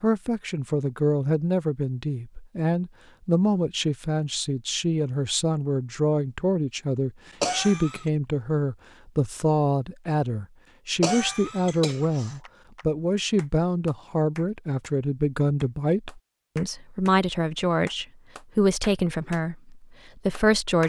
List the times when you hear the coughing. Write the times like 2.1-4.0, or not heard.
7.4-8.1, 11.0-12.3.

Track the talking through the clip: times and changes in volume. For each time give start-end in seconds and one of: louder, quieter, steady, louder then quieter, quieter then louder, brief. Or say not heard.
0.0-20.8 steady.